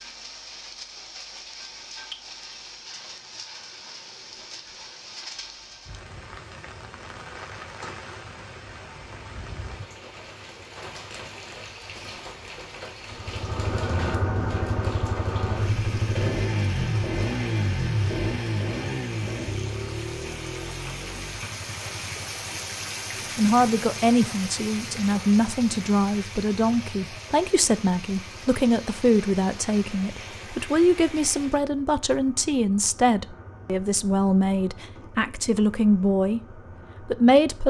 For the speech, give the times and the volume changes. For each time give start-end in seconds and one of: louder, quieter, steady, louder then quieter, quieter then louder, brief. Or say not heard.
23.4-36.4 steady
37.0-37.6 brief.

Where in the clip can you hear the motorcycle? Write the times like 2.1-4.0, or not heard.
13.1-37.6.